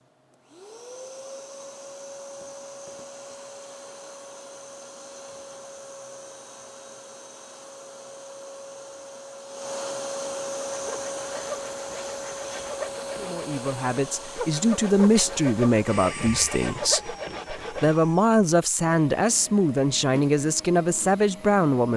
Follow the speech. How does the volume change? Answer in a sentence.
The loudness of the speech stays about the same.